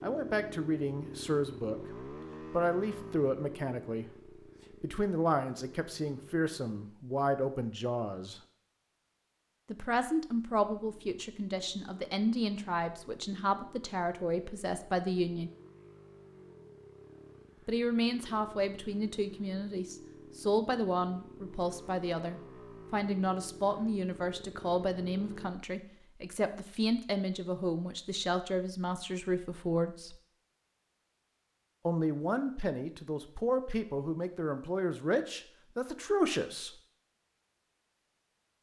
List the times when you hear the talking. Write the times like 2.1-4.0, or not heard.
0.0-4.0, 4.8-8.4, 9.7-15.5, 17.6-30.1, 31.9-36.7.